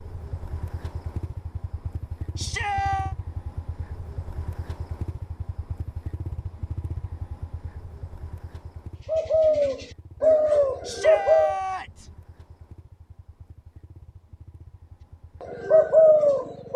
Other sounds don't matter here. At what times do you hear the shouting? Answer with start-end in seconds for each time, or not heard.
2.4-3.1, 10.8-12.1.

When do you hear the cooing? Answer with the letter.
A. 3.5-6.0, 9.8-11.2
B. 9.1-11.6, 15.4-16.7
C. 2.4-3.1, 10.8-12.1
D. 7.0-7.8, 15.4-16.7
B.